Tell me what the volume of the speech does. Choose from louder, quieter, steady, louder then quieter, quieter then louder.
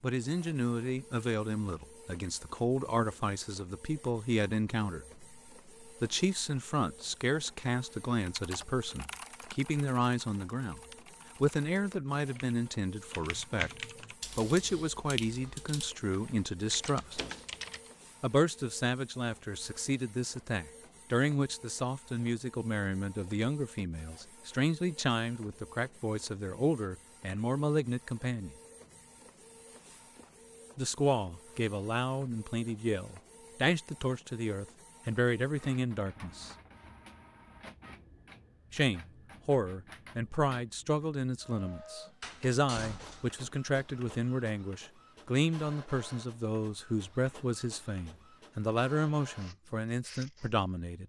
steady.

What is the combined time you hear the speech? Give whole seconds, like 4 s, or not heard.
44 s.